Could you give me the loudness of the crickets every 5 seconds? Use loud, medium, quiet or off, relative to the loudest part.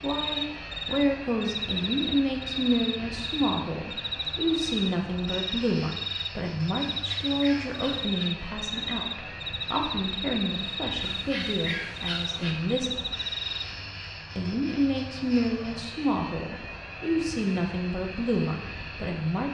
loud, loud, loud, off.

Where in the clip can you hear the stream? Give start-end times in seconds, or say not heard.
not heard.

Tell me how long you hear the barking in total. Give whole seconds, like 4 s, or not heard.
3 s.